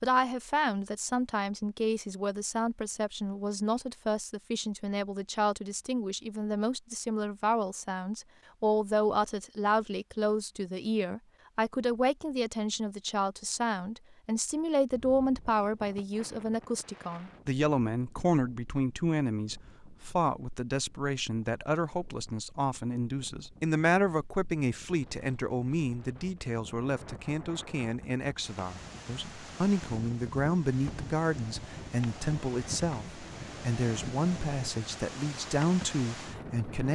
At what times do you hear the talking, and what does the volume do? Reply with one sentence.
You can hear the talking from 0.0 to 36.9 s, at a steady volume.